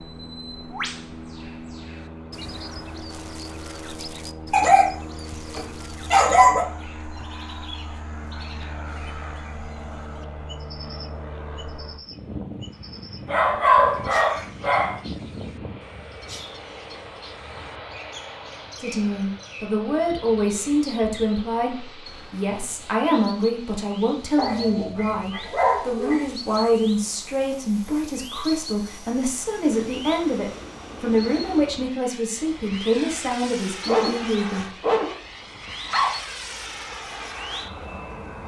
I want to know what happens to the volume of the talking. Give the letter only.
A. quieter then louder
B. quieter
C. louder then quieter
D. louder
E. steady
E.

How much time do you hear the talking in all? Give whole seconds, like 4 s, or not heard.
16 s.